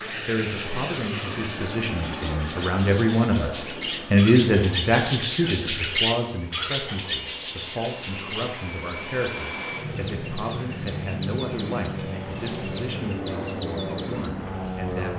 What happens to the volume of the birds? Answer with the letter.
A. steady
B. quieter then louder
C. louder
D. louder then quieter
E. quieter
D.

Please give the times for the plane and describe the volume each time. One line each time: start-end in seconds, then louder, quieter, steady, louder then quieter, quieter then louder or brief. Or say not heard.
0.0-15.1 quieter then louder.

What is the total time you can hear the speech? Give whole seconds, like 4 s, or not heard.
15 s.